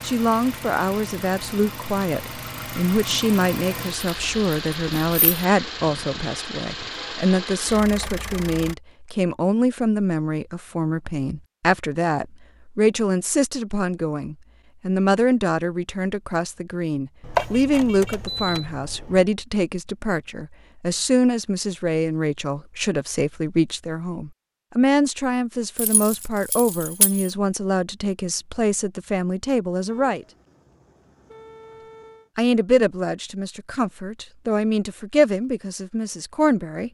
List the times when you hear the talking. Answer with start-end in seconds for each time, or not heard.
0.0-30.2, 32.4-36.8.